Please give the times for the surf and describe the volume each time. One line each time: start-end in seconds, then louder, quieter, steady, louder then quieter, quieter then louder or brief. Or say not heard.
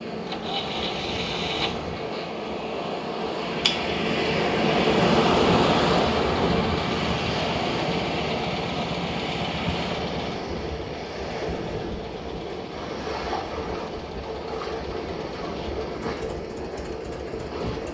0.0-17.9 louder then quieter.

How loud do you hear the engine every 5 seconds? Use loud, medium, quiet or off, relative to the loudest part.
loud, loud, medium, medium.